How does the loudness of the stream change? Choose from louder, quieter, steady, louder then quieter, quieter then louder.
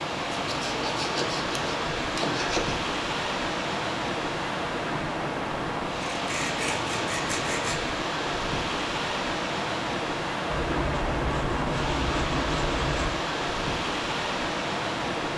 steady.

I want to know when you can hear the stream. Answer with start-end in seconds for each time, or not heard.
0.0-15.3.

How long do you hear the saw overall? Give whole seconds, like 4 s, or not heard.
7 s.